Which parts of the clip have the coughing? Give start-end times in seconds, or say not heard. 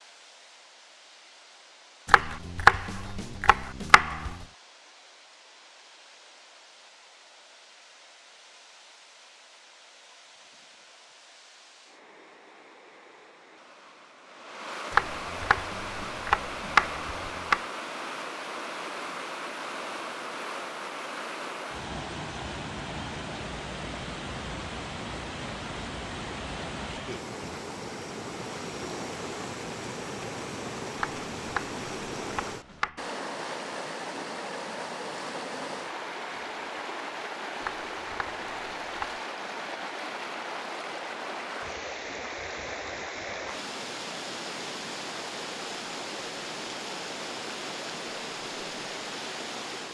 not heard.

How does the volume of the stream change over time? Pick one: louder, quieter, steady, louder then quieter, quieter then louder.
louder.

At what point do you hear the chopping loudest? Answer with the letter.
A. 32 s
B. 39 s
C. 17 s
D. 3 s
D.